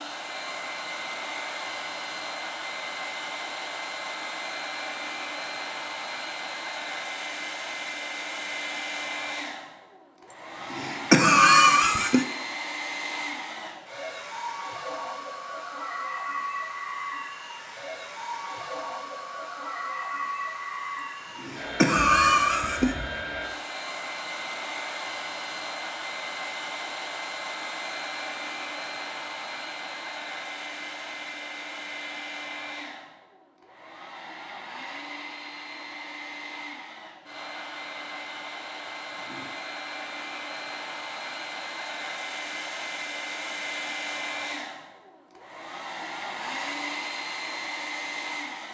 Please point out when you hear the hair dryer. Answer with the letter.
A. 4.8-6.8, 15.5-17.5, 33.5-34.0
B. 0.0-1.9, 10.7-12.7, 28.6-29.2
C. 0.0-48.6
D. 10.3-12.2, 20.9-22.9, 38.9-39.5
C.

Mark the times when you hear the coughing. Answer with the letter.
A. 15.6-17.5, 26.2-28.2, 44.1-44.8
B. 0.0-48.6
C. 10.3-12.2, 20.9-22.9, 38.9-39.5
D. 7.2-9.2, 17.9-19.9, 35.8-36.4
C.